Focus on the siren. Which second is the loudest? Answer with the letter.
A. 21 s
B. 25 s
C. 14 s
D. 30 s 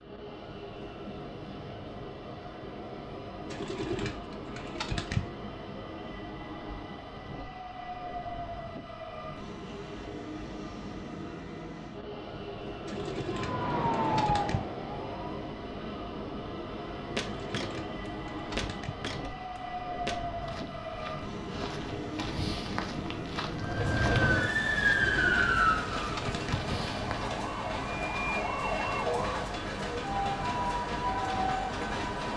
B.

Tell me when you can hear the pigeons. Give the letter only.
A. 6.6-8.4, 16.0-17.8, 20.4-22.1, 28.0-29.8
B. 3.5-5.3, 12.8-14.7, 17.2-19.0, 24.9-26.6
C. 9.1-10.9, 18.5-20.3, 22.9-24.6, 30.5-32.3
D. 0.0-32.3
B.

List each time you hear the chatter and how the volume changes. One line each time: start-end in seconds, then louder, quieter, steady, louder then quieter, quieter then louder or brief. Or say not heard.
not heard.